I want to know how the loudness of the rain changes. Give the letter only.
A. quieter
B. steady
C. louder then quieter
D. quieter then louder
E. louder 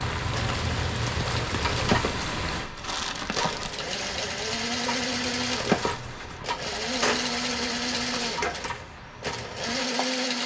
A.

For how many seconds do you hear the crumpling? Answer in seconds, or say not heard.
3 s.